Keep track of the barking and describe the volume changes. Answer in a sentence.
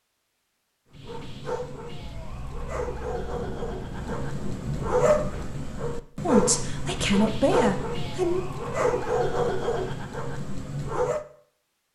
The loudness of the barking goes up.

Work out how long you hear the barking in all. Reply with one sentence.
The barking can be heard for 10 seconds in total.